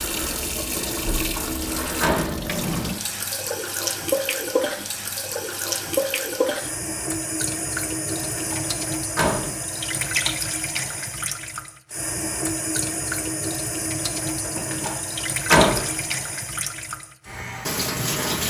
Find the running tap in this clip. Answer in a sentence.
You can hear the running tap from 0.0 to 18.4 s.